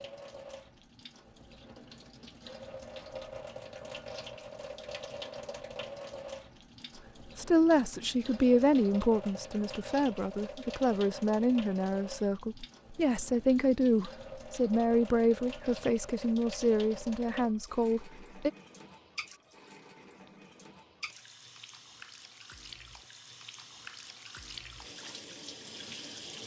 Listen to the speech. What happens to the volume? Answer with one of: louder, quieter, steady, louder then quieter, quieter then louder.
steady.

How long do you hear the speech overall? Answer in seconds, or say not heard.
11 s.